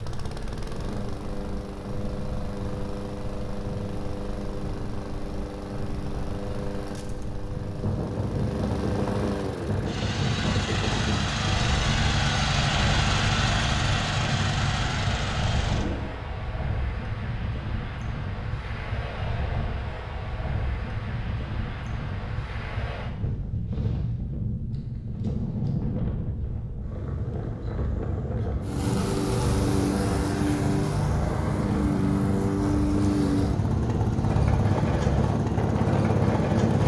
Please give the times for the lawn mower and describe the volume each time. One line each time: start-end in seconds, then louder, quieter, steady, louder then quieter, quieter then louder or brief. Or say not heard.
0.0-16.1 louder
28.6-36.8 steady.